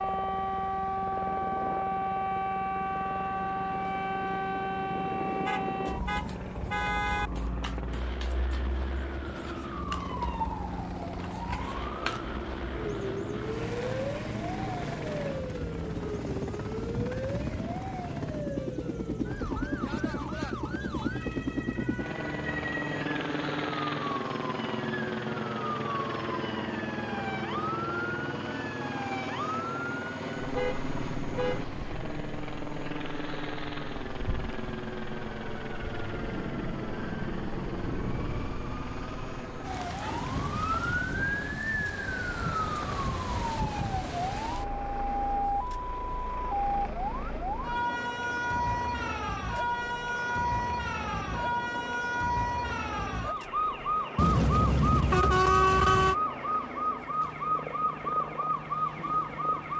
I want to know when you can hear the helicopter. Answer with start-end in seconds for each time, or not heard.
0.0-59.7.